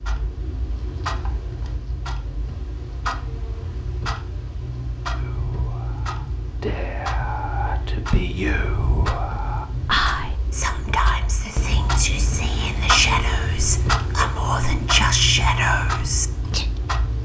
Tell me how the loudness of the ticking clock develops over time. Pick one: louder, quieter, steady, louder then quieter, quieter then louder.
louder.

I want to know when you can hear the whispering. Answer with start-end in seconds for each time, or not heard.
5.2-16.7.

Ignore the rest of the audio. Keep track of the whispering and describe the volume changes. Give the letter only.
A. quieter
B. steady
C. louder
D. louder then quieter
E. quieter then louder
C.